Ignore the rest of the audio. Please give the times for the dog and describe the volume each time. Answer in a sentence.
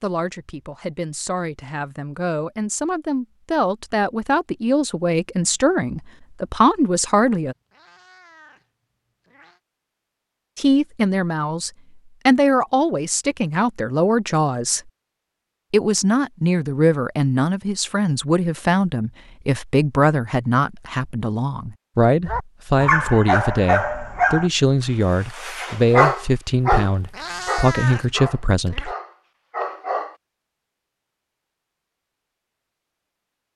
The dog can be heard briefly from 22.2 to 24.5 s; and from 25.3 to 30.1 s, getting quieter.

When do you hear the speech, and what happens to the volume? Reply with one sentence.
The speech can be heard from 0.0 to 7.5 s, getting louder; from 10.6 to 14.8 s, getting louder then quieter; and from 15.7 to 28.9 s, at a steady volume.